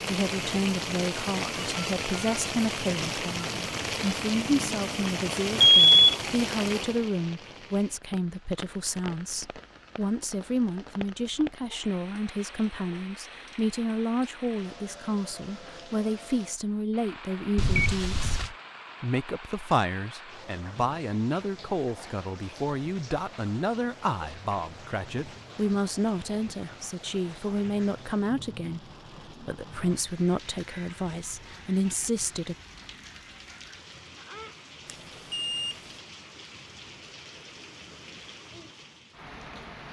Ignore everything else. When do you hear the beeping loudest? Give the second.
6 s.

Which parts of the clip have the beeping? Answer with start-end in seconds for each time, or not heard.
5.5-6.0, 17.6-18.5, 34.9-36.0.